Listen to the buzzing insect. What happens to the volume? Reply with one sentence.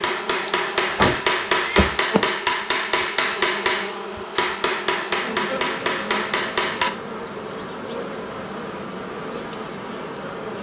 The volume of the buzzing insect stays about the same.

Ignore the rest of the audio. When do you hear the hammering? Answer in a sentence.
You can hear the hammering from 0.0 to 6.9 s.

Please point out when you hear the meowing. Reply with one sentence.
You can hear the meowing from 0.9 to 1.9 s.